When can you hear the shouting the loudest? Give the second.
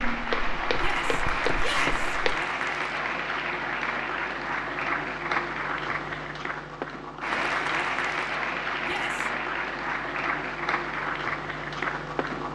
2 s.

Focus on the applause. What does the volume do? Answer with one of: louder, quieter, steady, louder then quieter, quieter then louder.
steady.